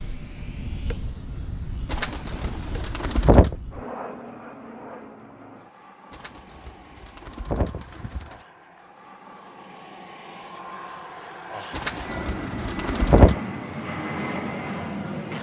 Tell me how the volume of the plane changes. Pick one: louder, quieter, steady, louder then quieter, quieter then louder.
quieter then louder.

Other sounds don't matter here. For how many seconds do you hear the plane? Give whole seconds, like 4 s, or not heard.
15 s.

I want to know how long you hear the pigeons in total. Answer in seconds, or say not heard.
6 s.